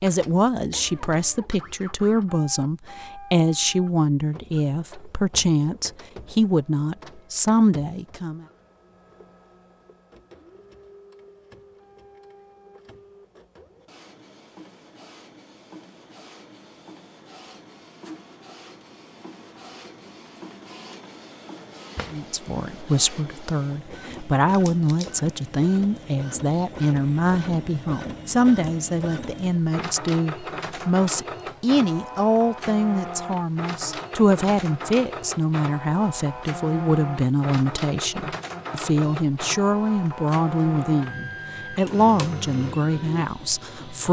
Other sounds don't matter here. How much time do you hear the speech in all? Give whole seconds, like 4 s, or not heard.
30 s.